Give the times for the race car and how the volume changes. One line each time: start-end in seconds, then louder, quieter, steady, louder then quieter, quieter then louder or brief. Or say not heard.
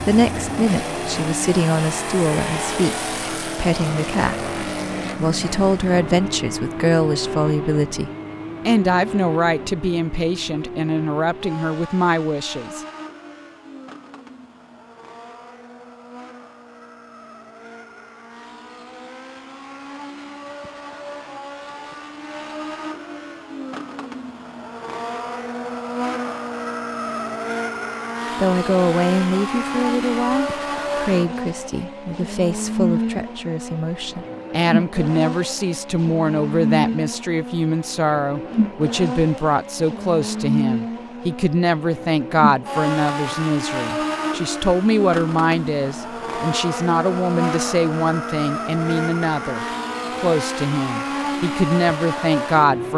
0.0-52.9 quieter then louder.